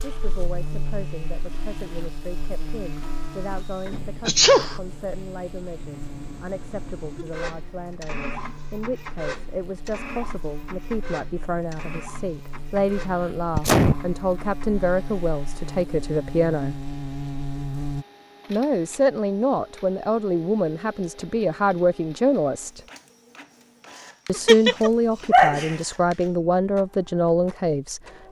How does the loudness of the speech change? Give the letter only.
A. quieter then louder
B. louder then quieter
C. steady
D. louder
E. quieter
D.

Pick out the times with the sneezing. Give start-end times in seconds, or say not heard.
4.2-4.8, 13.5-14.0, 24.3-25.8.